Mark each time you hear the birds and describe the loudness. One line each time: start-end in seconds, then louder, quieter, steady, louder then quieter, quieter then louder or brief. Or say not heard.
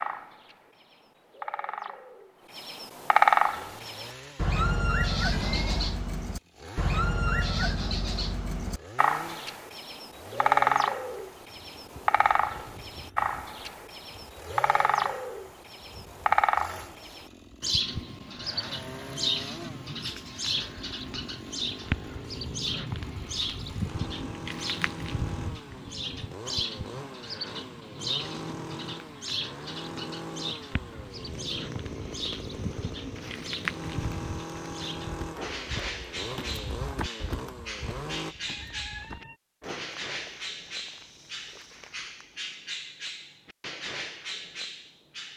0.0-45.3 quieter.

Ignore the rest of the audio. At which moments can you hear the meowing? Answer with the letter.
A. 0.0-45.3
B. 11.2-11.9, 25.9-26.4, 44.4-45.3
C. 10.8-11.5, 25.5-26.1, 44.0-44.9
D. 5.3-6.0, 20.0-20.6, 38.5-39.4
D.